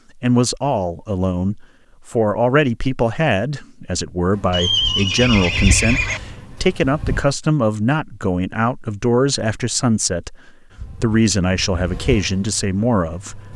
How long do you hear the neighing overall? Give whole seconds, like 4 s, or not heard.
2 s.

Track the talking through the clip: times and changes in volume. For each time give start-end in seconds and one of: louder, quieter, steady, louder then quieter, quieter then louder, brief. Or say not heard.
0.1-13.5 steady.